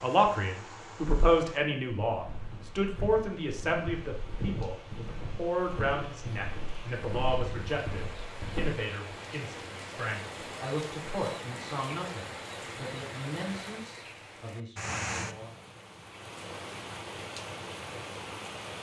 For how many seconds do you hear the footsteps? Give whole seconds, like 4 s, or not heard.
7 s.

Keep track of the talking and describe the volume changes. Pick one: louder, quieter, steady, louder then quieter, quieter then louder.
quieter.